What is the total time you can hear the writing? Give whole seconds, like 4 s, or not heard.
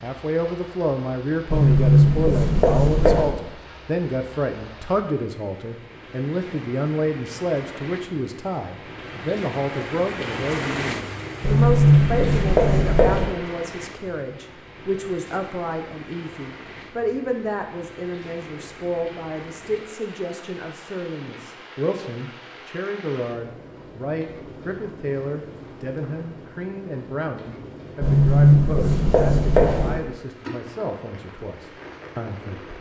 6 s.